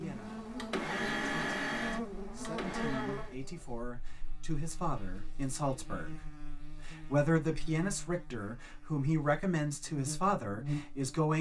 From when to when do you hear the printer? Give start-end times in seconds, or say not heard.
0.0-3.4.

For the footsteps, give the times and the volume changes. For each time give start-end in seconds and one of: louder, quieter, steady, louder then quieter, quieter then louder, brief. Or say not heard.
not heard.